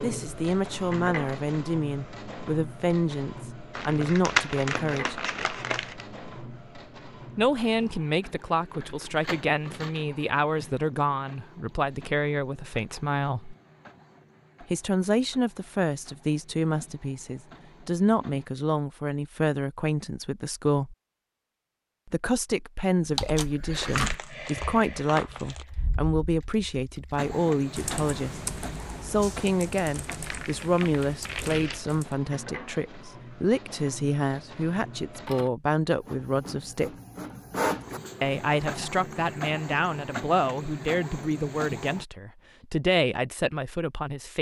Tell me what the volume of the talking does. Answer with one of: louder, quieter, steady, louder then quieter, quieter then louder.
steady.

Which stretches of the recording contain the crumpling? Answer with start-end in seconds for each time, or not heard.
3.8-6.0, 23.8-25.6, 30.1-31.9.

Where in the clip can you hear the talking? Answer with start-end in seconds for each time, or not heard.
0.0-5.2, 7.3-13.6, 14.6-20.9, 22.1-28.4, 29.0-36.9, 38.2-44.3.